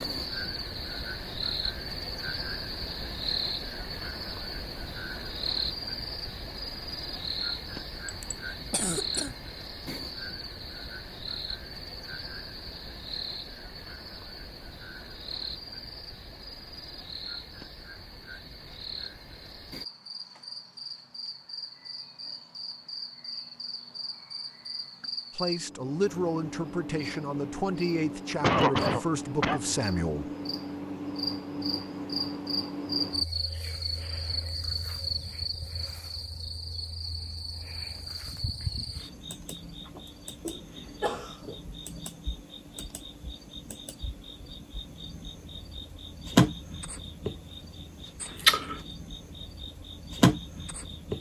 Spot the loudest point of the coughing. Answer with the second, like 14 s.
29 s.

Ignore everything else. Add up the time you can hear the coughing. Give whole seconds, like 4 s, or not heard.
4 s.